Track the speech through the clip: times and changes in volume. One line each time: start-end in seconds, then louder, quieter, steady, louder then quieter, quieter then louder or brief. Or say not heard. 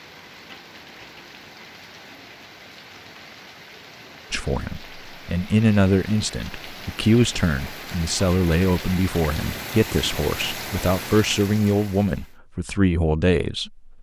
4.3-13.9 steady.